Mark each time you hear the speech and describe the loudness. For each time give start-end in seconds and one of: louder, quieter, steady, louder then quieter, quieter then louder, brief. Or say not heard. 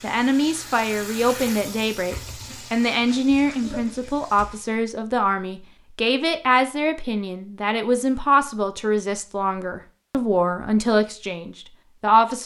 0.0-12.4 steady.